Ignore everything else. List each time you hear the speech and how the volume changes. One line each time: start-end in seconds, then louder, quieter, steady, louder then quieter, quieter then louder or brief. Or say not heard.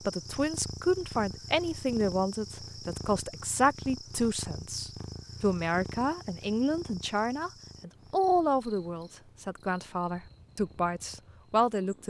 0.1-12.0 steady.